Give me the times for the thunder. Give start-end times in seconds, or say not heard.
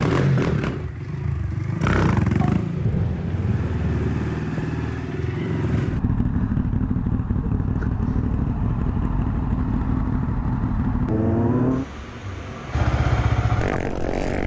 2.4-4.2.